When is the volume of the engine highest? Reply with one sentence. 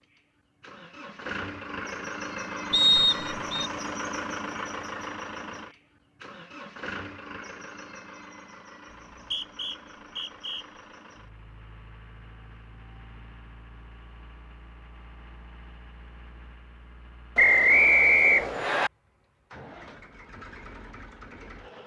The volume of the engine peaks at 4 seconds.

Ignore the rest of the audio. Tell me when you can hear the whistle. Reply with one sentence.
The whistle can be heard from 2.7 to 3.7 s, from 8.9 to 10.7 s and from 17.4 to 18.9 s.